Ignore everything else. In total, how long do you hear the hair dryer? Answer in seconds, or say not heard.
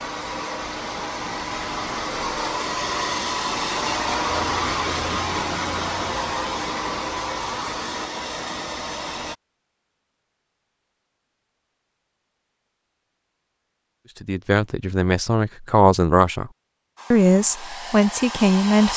11 s.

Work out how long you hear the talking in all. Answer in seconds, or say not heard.
4 s.